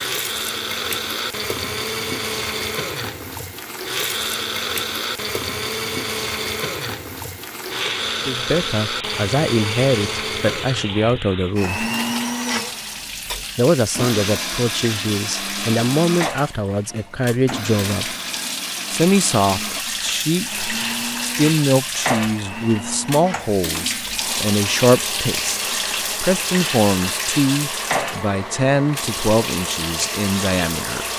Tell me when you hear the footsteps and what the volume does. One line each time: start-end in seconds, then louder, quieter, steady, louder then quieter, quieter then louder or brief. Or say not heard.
not heard.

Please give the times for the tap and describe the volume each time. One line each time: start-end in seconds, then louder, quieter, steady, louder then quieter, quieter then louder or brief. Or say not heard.
0.0-31.1 louder.